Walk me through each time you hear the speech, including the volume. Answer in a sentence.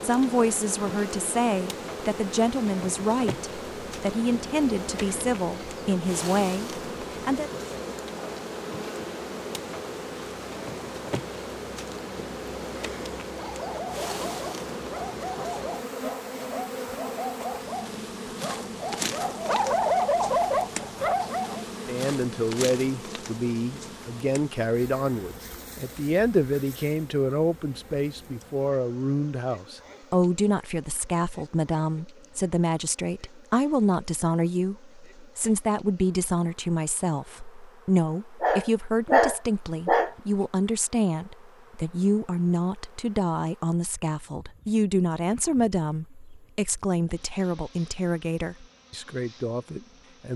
You can hear the speech from 0.0 to 7.5 s, at a steady volume; and from 21.9 to 50.3 s, at a steady volume.